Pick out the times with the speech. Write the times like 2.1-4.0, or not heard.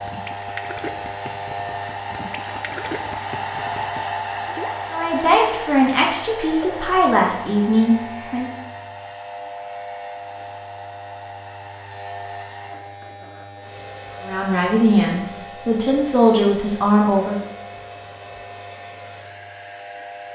4.9-8.5, 14.2-17.4.